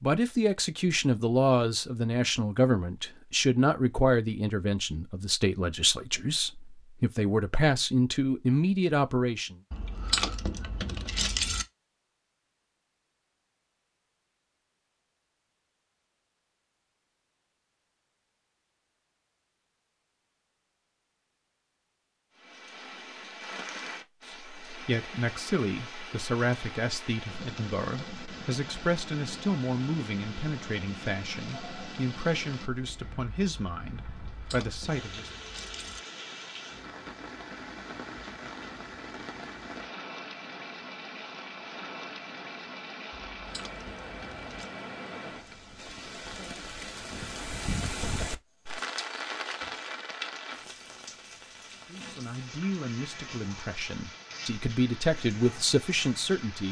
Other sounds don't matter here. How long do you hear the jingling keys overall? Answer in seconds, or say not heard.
5 s.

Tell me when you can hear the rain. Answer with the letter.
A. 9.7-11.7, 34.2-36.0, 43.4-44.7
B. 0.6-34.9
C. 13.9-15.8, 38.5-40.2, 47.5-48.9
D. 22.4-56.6
D.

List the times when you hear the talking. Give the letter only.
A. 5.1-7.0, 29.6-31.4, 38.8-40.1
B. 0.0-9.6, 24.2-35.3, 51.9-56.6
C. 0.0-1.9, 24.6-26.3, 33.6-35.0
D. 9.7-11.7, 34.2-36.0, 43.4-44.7
B.